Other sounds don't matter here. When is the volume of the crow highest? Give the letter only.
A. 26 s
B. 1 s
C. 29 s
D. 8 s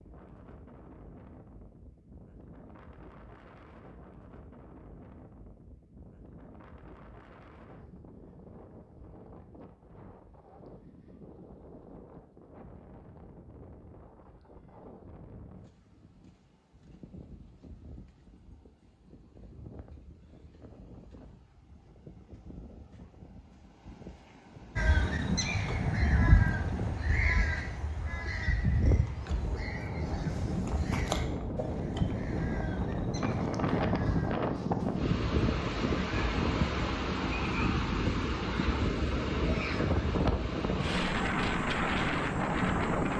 A.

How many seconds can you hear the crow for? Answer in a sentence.
The crow can be heard for 10 seconds in total.